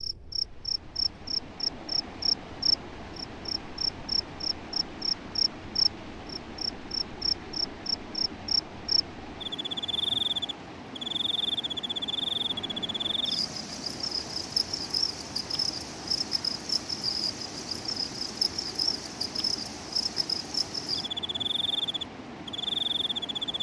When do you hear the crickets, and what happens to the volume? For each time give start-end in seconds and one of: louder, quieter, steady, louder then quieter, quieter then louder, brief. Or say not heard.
0.0-23.5 steady.